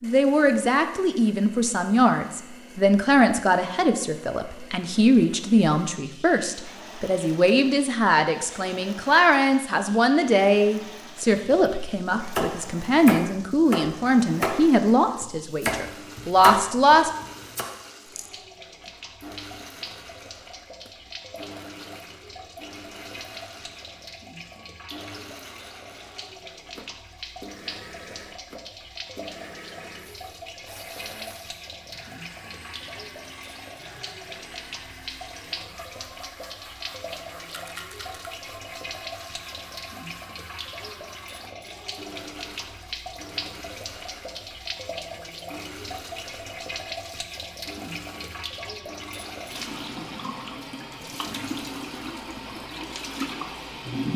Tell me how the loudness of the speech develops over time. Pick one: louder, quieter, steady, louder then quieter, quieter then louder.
steady.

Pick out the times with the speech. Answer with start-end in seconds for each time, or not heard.
0.0-17.1.